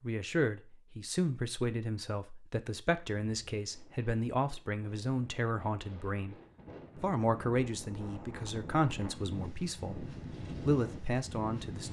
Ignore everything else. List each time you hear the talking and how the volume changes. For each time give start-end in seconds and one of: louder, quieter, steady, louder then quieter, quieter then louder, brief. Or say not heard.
0.0-6.3 steady
7.0-11.8 quieter then louder.